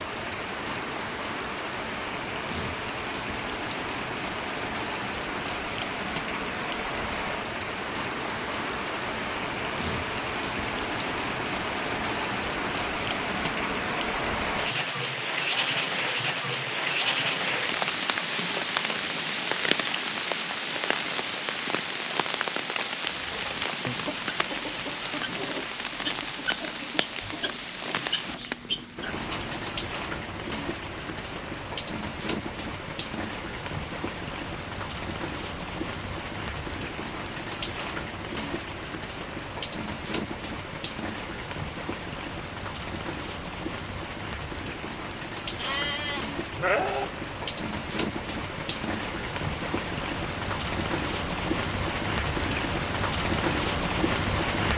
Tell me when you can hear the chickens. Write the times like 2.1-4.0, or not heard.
23.0-29.7.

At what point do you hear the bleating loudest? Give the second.
47 s.